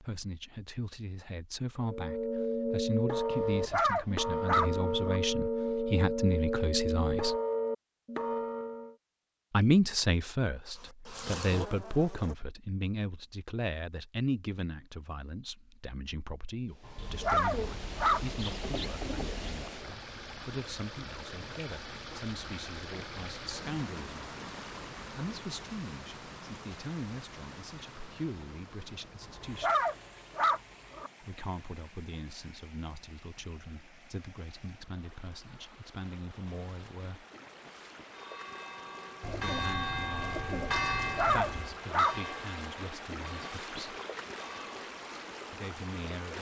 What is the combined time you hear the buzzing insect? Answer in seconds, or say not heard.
2 s.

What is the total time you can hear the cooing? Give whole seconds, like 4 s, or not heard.
5 s.